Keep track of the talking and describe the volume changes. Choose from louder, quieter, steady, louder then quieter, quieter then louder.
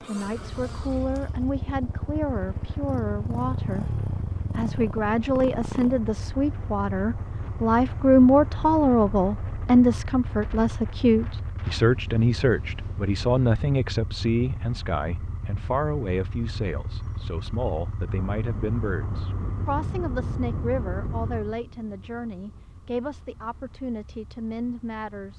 louder then quieter.